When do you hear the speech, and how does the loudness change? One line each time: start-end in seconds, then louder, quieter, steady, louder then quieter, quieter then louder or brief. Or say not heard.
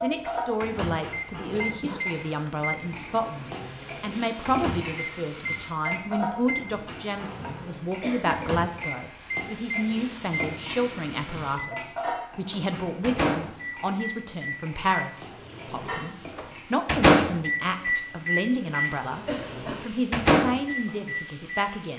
0.0-21.9 steady.